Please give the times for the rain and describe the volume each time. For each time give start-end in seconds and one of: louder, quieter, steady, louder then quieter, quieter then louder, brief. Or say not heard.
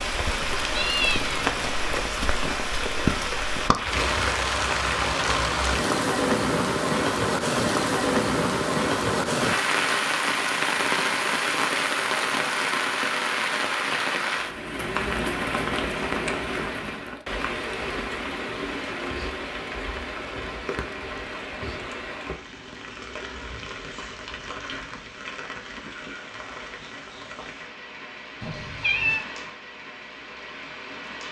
0.0-31.2 quieter.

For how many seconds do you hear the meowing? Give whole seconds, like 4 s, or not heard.
2 s.